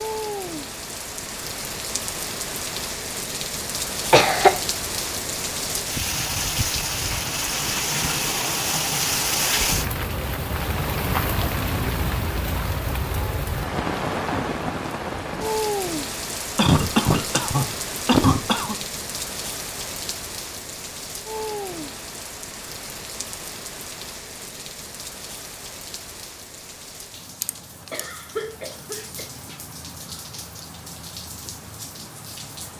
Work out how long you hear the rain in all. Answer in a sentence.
The rain can be heard for 33 seconds in total.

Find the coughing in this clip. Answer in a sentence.
The coughing can be heard from 4.1 to 4.5 s, from 16.6 to 18.8 s and from 27.9 to 29.2 s.